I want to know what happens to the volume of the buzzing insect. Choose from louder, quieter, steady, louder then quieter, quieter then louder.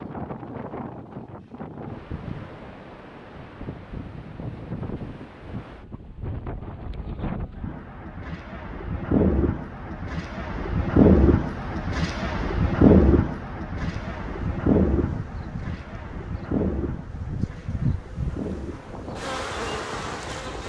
louder.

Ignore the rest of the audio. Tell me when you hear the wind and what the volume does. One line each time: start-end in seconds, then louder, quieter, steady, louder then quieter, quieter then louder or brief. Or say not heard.
0.0-20.6 louder then quieter.